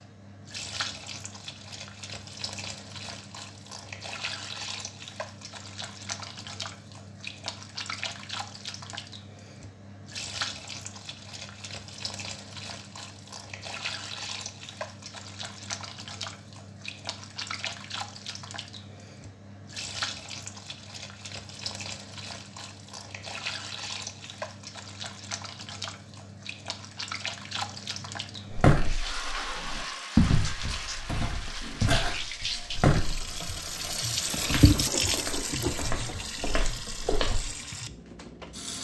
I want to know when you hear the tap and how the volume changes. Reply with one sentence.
You can hear the tap from 0.0 to 38.7 s, getting louder.